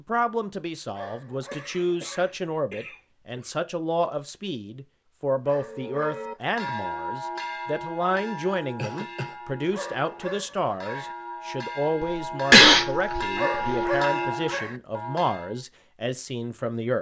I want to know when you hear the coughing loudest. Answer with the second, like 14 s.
13 s.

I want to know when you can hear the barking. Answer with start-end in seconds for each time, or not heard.
0.9-2.4, 5.5-6.8, 9.7-11.2, 13.3-14.8.